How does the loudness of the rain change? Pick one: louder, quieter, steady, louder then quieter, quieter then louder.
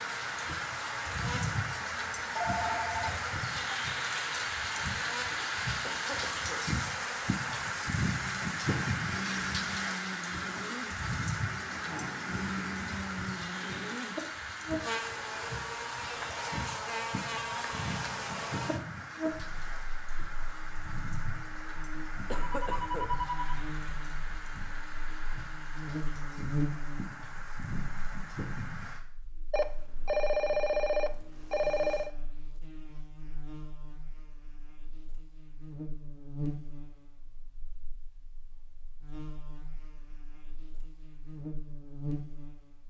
quieter.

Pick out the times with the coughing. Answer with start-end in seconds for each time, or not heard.
5.8-6.7, 22.3-23.1.